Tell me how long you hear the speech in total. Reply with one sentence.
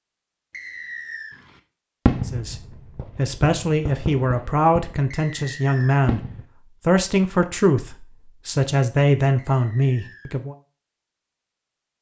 The speech can be heard for 8 seconds in total.